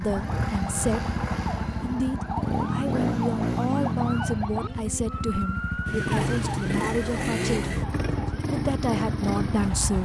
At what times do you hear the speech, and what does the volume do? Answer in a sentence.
You can hear the speech briefly from 0.0 to 1.1 s; from 1.8 to 7.7 s, at a steady volume; and briefly from 8.5 to 9.9 s.